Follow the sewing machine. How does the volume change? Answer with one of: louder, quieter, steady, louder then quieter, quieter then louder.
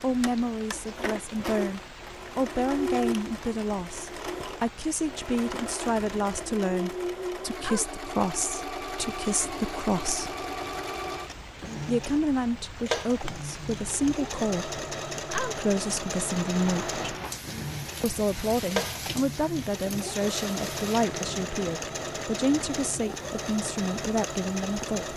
steady.